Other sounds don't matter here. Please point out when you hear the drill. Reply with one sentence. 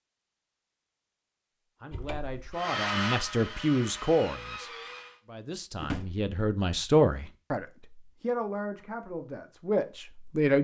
The drill can be heard from 2.5 to 5.2 s.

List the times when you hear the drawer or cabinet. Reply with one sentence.
You can hear the drawer or cabinet from 1.9 to 2.4 s and from 5.8 to 6.3 s.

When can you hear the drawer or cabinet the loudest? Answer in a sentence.
The volume of the drawer or cabinet peaks at 6 seconds.